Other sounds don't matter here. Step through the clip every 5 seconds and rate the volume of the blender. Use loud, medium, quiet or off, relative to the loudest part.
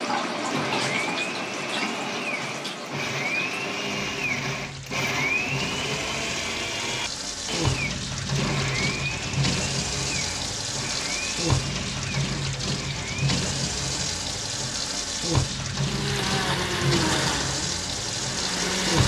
loud, loud, medium, loud.